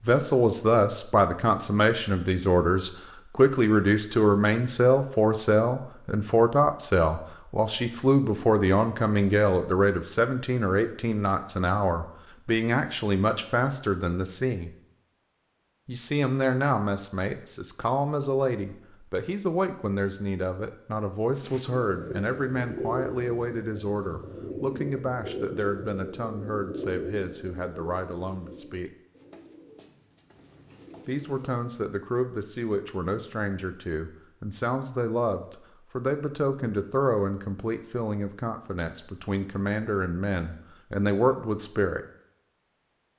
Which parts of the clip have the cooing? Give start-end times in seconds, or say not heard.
21.4-31.6.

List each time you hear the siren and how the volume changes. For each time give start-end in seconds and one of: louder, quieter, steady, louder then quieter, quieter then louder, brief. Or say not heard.
not heard.